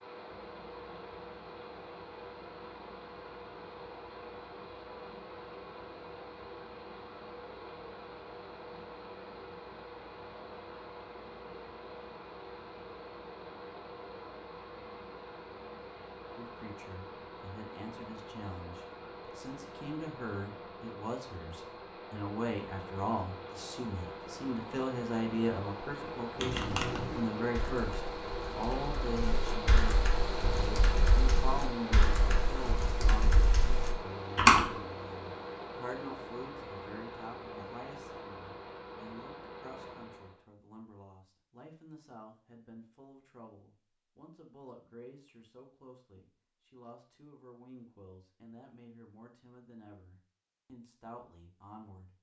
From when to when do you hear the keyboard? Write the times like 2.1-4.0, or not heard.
26.4-34.7.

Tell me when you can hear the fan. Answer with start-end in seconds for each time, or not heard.
0.0-40.5.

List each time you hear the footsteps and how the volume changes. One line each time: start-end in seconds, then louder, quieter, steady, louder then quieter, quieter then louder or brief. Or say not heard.
not heard.